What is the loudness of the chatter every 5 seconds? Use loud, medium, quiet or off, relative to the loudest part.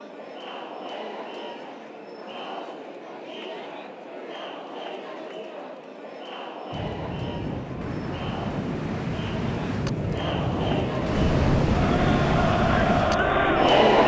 quiet, quiet, loud.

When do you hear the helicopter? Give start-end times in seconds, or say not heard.
11.1-14.0.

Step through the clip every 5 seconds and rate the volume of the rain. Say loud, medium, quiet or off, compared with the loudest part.
off, loud, loud.